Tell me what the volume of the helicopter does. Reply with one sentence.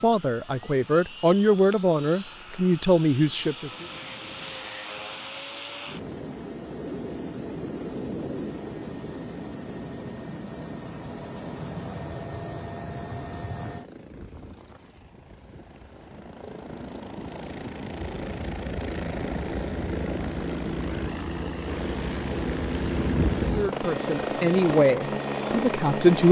The volume of the helicopter goes up.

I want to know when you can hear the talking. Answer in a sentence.
The talking can be heard from 0.0 to 3.9 s and from 23.6 to 26.2 s.